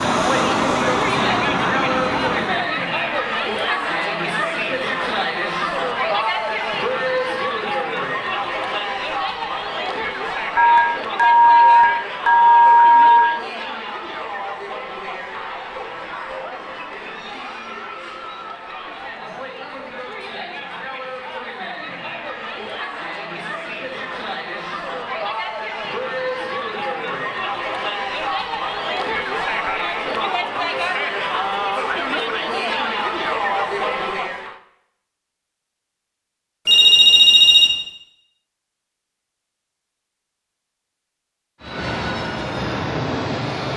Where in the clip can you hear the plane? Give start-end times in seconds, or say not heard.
0.0-2.7, 41.6-43.7.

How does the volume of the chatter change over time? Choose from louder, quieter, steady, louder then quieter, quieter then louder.
quieter then louder.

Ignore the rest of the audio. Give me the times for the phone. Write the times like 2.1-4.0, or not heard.
10.6-13.3, 36.6-37.7.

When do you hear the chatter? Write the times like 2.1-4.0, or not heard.
0.0-34.6.